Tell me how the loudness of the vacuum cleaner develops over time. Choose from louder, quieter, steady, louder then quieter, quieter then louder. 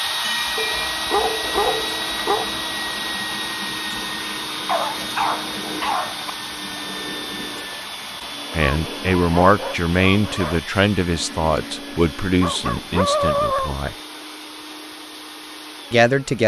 quieter.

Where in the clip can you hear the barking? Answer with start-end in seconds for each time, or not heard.
0.6-2.5, 4.7-6.3, 8.7-10.6, 12.3-13.8.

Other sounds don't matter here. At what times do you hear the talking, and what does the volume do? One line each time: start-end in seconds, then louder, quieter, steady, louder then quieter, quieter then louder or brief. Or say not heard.
8.6-13.9 quieter
15.9-16.4 brief.